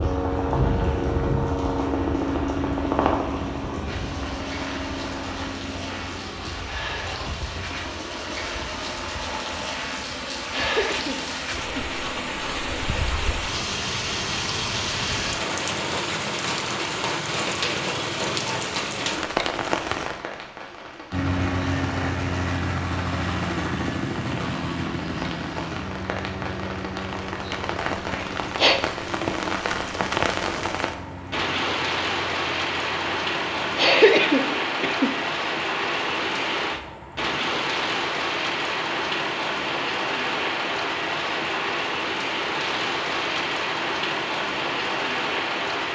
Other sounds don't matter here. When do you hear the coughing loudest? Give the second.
34 s.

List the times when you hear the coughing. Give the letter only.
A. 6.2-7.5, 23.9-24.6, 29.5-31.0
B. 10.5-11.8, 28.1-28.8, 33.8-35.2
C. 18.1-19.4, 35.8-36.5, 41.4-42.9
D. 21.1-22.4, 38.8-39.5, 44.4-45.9
B.